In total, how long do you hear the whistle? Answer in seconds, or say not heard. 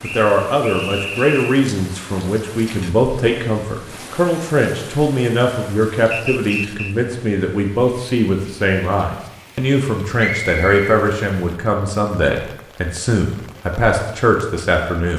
3 s.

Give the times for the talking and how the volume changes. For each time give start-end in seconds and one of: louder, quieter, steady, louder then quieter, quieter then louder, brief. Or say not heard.
0.0-15.1 steady.